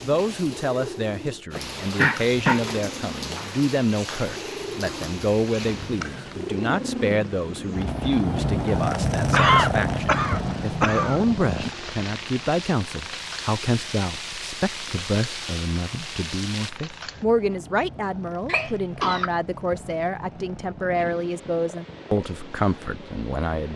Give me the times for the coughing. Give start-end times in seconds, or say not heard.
1.6-2.6, 9.3-11.2, 18.4-19.3.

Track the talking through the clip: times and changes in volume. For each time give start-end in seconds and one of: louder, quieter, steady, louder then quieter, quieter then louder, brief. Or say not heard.
0.0-23.7 steady.